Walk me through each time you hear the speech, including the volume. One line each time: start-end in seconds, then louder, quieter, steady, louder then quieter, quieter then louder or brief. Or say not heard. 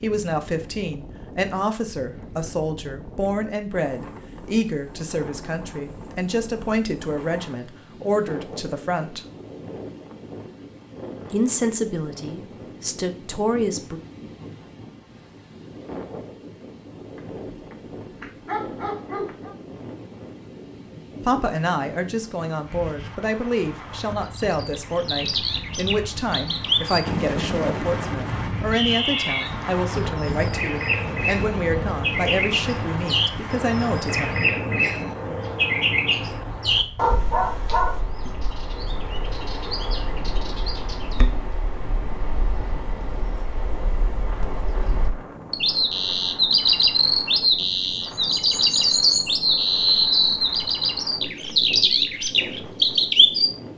0.0-9.2 steady
11.3-14.0 brief
21.2-34.3 steady.